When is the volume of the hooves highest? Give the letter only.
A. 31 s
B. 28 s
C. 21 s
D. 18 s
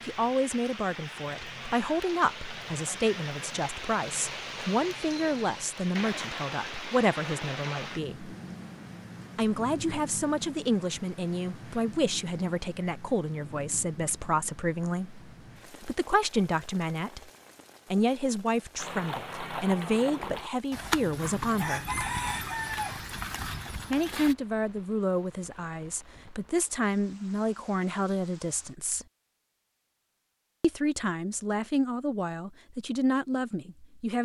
C.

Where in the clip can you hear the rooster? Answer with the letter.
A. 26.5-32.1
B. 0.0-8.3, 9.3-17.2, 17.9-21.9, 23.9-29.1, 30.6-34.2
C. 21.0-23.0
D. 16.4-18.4
C.